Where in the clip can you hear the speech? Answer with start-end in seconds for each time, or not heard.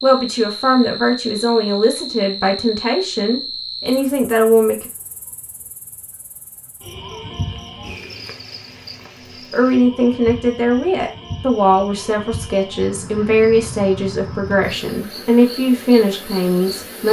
0.0-4.8, 9.5-17.0.